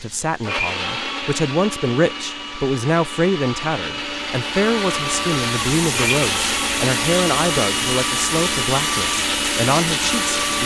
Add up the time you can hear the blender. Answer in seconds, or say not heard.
10 s.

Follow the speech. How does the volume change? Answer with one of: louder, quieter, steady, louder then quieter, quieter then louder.
steady.